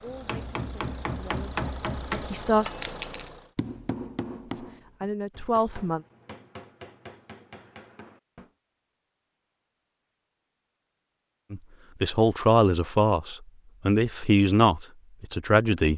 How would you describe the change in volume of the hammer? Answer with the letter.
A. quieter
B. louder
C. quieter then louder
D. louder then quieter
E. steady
A.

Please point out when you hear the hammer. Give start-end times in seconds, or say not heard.
0.1-8.5.